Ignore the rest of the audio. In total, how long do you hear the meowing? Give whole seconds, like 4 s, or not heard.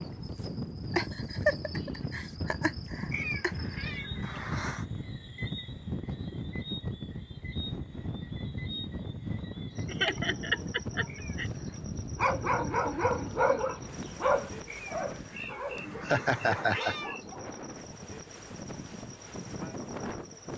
5 s.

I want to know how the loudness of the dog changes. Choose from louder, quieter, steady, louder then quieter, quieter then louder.
quieter.